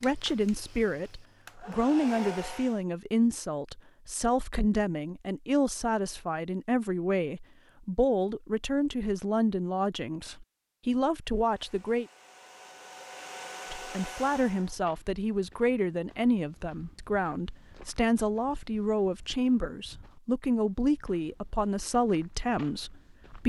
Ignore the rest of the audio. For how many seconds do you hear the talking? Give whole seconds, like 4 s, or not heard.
22 s.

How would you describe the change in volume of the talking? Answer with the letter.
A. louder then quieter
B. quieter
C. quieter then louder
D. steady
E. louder
D.